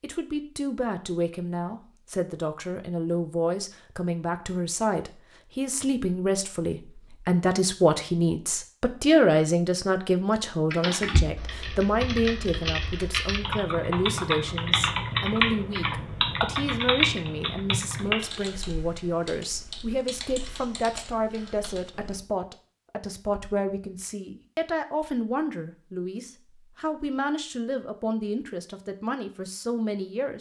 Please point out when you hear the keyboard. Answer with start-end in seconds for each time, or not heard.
10.7-22.2.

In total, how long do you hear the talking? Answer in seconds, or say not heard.
30 s.